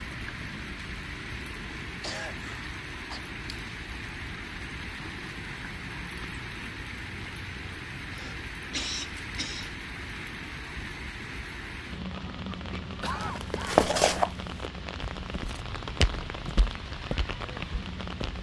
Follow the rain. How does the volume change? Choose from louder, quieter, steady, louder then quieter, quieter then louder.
steady.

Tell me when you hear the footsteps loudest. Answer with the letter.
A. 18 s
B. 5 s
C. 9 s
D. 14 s
D.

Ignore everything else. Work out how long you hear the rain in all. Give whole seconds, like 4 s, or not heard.
18 s.